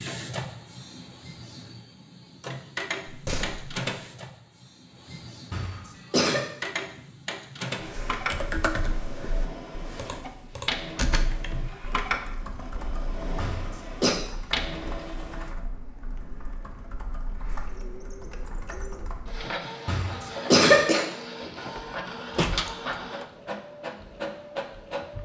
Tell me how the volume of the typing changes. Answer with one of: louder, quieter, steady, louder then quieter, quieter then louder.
quieter.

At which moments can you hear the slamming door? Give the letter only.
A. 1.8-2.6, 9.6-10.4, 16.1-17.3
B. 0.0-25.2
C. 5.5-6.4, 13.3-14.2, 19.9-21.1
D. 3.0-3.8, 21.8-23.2
D.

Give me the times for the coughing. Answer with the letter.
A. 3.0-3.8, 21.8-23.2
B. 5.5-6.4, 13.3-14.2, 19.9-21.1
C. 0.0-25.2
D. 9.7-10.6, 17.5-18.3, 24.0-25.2
B.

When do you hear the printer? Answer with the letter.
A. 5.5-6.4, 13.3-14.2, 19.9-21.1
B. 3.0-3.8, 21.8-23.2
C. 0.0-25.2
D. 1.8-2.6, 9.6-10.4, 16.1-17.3
C.